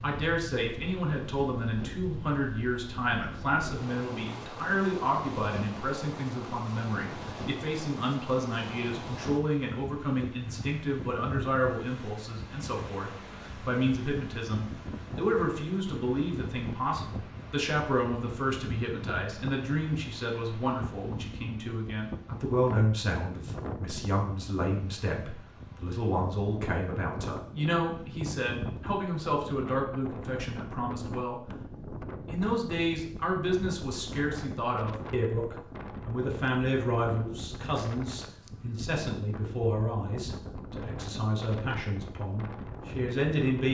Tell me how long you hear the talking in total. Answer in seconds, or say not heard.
43 s.